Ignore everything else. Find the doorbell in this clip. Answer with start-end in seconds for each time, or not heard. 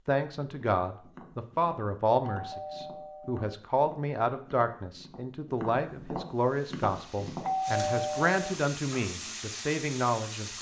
2.3-3.5, 7.4-8.4.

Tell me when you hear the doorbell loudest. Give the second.
8 s.